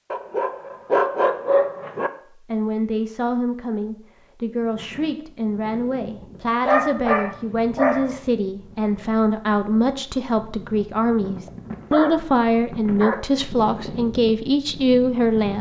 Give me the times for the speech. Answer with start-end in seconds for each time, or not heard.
2.3-15.5.